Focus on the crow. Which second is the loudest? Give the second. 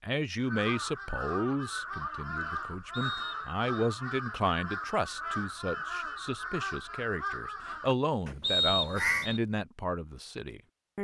9 s.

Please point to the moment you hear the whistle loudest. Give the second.
9 s.